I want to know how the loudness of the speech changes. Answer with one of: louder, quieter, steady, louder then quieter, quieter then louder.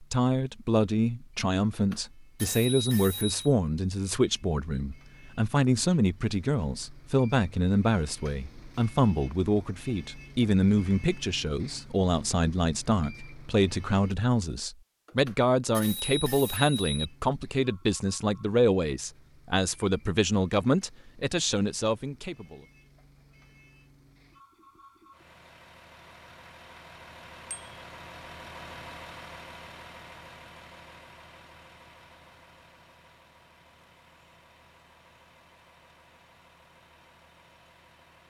steady.